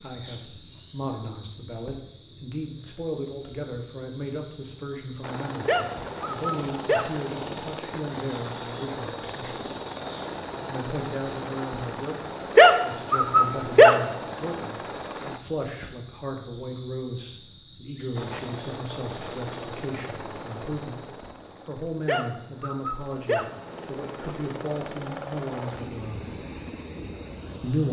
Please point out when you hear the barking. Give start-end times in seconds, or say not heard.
5.7-7.0, 12.6-13.9, 22.1-23.4.